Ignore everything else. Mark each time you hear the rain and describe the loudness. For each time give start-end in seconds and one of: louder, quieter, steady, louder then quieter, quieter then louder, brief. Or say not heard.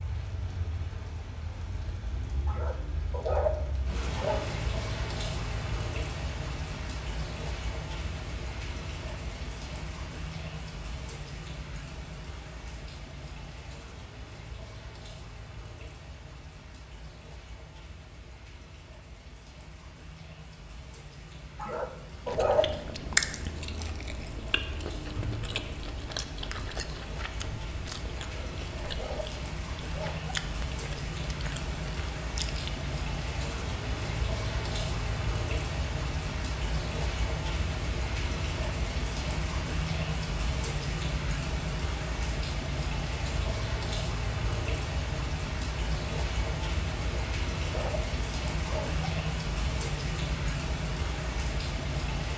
0.0-52.3 quieter then louder.